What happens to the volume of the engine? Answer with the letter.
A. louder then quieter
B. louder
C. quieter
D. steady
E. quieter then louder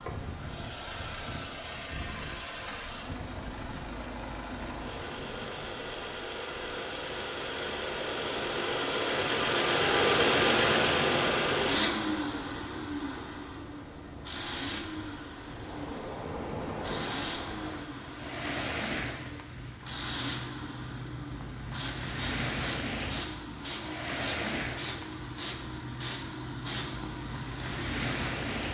A.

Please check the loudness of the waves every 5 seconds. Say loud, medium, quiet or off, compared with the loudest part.
medium, medium, loud, loud, loud, loud.